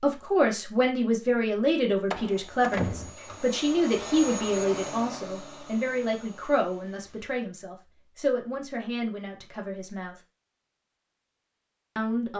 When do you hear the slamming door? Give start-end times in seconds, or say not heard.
2.1-3.1.